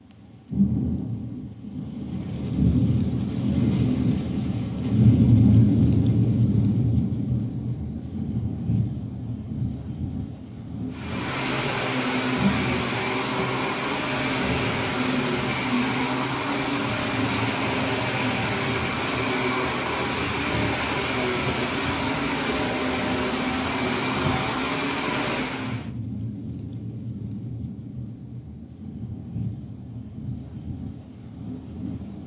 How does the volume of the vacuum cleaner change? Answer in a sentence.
The loudness of the vacuum cleaner stays about the same.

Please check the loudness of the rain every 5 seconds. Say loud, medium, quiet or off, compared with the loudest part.
loud, loud, medium, quiet, quiet, quiet, quiet.